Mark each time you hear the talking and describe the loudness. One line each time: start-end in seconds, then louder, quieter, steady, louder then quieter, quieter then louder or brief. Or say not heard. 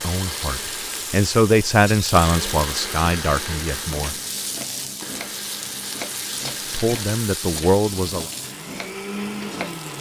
0.0-4.2 louder then quieter
6.7-8.3 brief.